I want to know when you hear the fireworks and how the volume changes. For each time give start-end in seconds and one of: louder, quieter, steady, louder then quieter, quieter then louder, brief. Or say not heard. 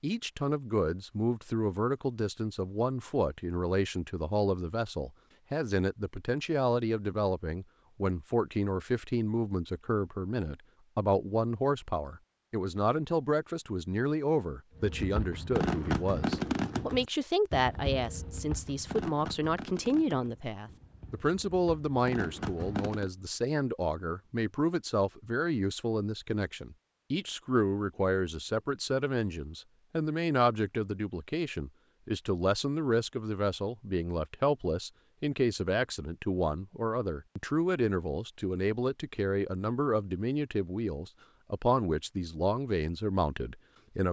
14.8-23.1 quieter then louder.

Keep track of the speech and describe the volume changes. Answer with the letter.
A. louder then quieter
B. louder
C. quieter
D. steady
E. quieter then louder
D.